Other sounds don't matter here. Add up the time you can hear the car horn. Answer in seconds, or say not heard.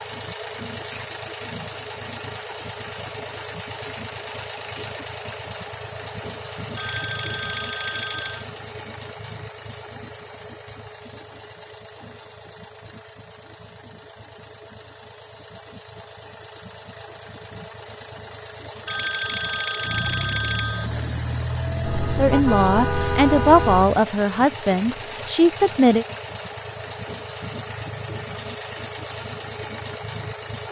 2 s.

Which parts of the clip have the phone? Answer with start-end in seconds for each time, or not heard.
6.8-8.4, 18.9-20.9.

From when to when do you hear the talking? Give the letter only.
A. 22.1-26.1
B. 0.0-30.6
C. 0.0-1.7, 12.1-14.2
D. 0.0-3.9
A.